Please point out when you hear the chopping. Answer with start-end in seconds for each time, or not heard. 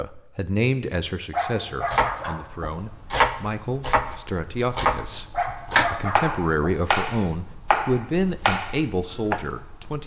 1.9-9.4.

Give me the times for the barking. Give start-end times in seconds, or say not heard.
1.3-2.8, 5.3-7.0.